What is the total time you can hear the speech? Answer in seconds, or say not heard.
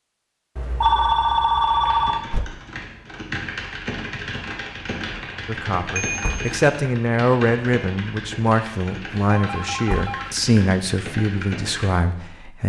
7 s.